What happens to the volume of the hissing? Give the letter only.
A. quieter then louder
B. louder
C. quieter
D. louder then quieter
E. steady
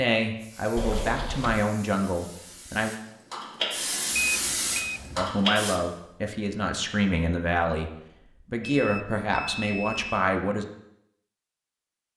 B.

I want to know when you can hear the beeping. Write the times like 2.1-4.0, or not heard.
0.8-1.6, 4.2-5.3, 8.6-10.2.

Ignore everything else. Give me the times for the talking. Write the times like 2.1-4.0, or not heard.
0.0-2.9, 5.2-10.7.